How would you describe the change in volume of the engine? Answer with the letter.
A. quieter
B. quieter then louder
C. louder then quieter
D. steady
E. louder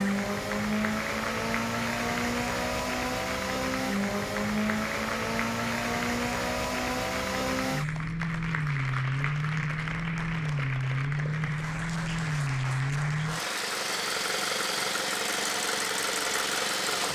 D.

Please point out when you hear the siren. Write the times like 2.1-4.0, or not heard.
not heard.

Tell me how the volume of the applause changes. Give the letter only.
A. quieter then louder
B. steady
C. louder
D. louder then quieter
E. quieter
B.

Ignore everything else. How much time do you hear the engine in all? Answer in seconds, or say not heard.
17 s.